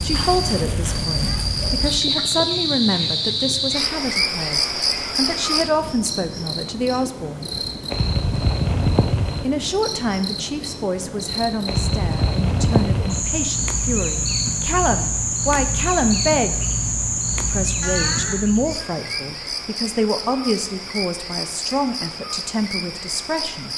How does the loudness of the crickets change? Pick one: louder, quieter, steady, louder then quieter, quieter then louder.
quieter.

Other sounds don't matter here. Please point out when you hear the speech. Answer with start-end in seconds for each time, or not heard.
0.0-7.5, 9.4-16.6, 17.4-23.7.